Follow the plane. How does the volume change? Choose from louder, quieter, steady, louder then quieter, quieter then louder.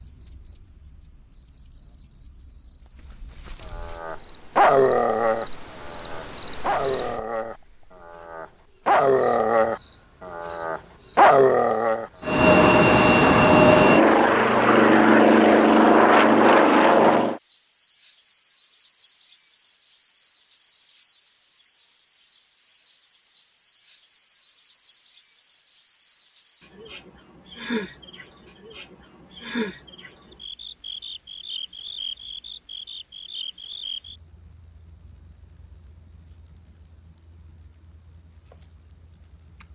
steady.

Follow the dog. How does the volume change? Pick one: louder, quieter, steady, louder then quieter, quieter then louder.
quieter then louder.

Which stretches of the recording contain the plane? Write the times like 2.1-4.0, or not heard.
12.2-17.4.